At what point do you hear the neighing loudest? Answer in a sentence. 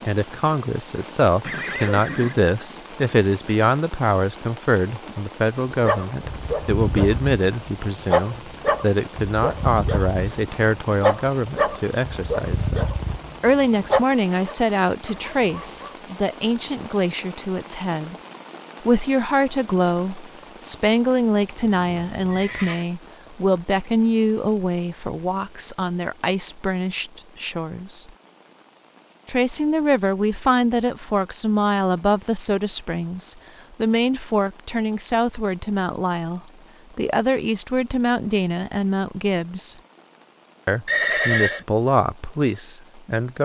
The volume of the neighing peaks at 41 seconds.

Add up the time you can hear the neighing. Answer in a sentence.
The neighing can be heard for 3 seconds in total.